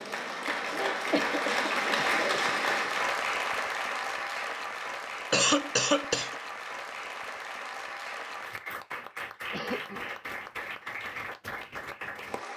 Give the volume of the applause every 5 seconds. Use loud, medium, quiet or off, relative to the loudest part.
loud, medium, medium.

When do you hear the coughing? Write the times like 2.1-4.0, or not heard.
0.5-2.5, 5.3-6.3, 9.5-10.1.